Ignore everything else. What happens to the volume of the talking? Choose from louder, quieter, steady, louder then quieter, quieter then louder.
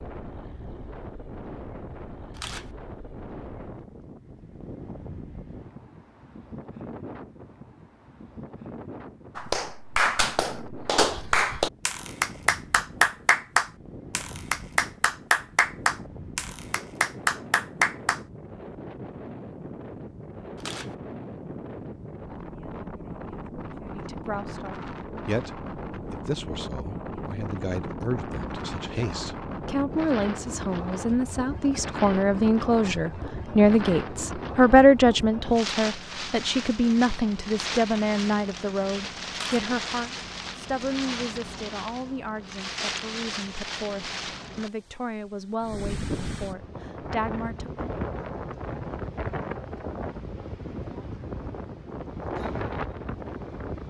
louder then quieter.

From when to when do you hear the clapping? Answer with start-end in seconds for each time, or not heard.
9.3-18.2.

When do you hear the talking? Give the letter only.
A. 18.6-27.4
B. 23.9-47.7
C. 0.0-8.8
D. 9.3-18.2
B.